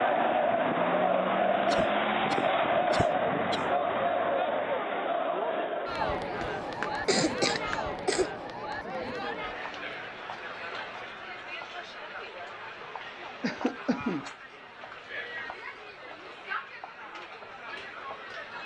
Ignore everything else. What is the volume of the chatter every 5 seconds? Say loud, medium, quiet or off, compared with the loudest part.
loud, medium, quiet, quiet.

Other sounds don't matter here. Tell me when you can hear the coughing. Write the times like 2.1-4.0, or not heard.
1.6-3.6, 6.3-8.3, 13.4-14.3.